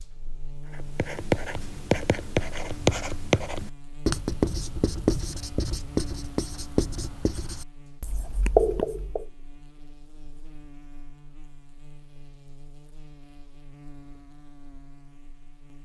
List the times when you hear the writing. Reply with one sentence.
You can hear the writing from 0.8 to 9.2 s.